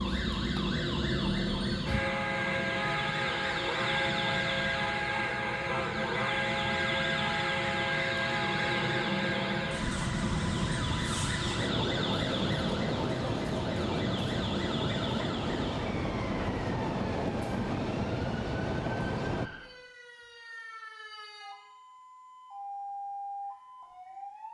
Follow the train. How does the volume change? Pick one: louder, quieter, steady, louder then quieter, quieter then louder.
steady.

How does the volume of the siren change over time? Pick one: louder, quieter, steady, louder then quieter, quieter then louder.
quieter.